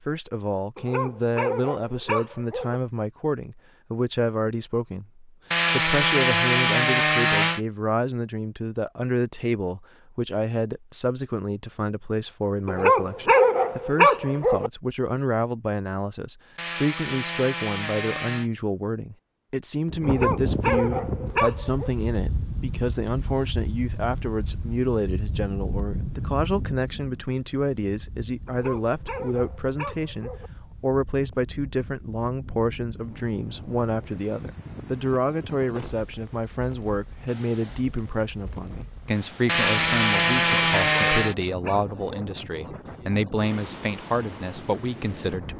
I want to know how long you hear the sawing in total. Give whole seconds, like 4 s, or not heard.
6 s.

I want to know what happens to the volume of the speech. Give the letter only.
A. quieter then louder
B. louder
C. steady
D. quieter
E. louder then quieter
C.